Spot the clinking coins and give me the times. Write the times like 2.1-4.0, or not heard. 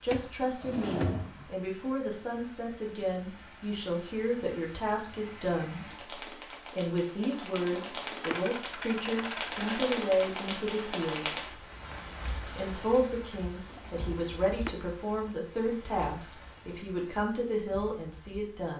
8.2-9.8.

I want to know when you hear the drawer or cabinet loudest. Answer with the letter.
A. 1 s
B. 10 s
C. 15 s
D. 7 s
A.